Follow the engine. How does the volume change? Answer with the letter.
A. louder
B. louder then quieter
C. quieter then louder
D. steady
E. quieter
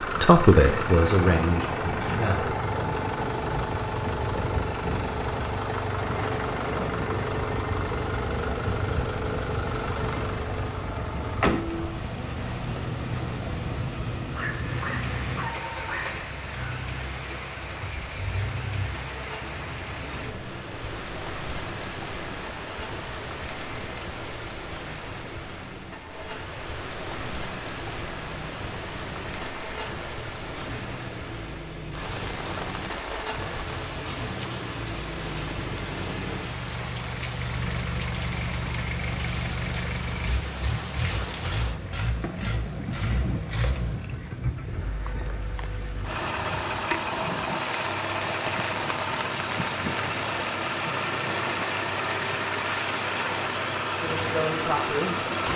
C.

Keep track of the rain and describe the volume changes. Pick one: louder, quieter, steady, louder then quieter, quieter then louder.
steady.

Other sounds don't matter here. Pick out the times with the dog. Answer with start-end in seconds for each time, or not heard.
14.3-16.2.